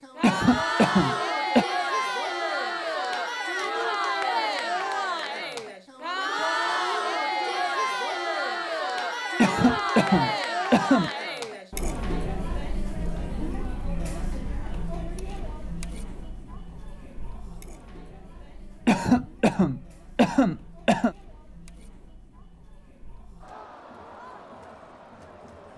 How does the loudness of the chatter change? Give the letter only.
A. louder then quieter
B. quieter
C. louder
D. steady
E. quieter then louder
B.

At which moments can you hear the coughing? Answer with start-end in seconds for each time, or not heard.
0.2-1.6, 9.3-11.1, 18.9-21.1.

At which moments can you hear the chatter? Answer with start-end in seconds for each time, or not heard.
0.0-25.7.